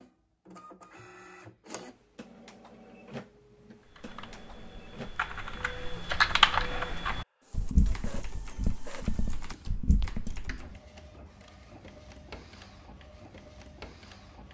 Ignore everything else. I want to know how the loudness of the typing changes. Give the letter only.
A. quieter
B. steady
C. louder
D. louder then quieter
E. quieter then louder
D.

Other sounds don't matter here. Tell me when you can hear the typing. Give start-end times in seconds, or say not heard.
3.9-10.8.